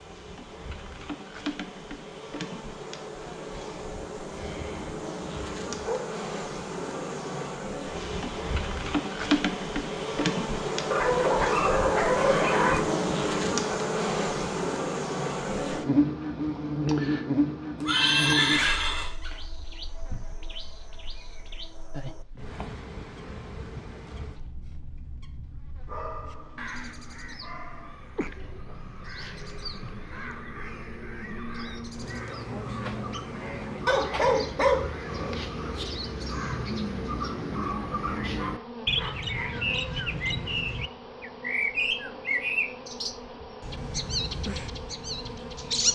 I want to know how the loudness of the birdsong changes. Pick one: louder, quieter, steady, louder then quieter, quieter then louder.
louder.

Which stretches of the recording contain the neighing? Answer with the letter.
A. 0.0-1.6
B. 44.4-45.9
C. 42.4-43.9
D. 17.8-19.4
D.